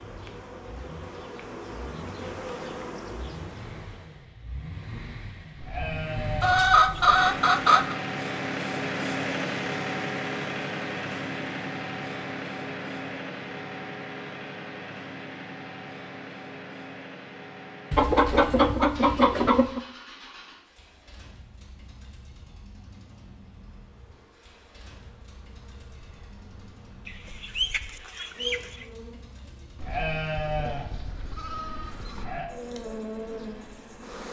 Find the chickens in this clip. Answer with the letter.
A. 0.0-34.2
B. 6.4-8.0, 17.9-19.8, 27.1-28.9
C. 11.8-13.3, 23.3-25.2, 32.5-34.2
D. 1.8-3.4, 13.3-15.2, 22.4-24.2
B.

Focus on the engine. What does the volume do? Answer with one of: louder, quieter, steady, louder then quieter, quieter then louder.
louder then quieter.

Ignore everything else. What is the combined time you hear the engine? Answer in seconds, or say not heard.
34 s.